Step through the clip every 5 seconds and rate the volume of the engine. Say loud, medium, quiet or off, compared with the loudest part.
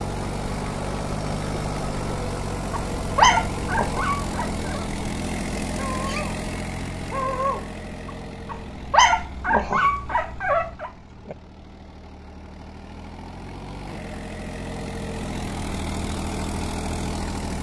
loud, loud, medium, loud.